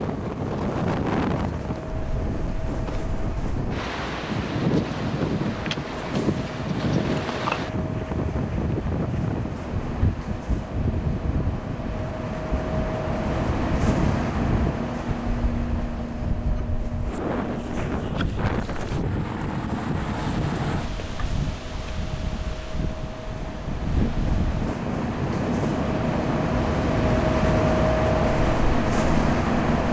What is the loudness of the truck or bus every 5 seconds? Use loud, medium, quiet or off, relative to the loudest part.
quiet, quiet, medium, medium, quiet, loud.